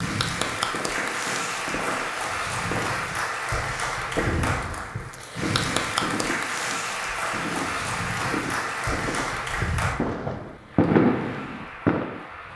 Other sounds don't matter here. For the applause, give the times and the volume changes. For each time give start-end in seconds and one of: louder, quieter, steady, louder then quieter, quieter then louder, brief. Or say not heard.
0.0-12.5 quieter.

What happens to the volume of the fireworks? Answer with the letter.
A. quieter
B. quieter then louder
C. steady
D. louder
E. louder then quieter
D.